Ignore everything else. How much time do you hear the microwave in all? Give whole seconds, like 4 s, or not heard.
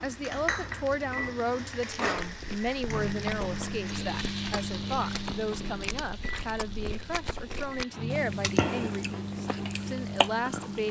11 s.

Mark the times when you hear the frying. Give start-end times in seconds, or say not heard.
0.0-10.8.